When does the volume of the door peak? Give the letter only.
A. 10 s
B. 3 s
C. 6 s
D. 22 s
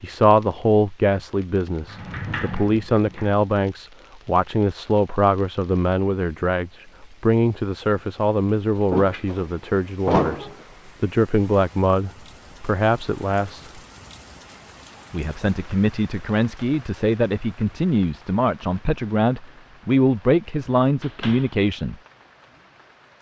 A.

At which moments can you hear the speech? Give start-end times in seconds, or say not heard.
0.0-13.8, 15.1-21.9.